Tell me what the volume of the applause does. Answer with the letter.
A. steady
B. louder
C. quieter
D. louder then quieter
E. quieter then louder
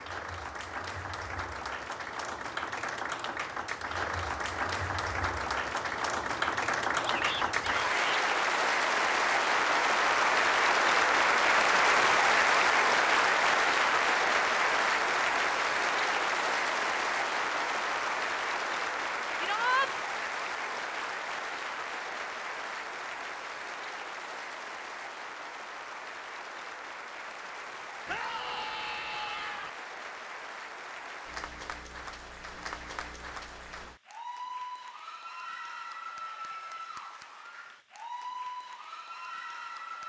D.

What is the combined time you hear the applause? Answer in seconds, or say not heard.
40 s.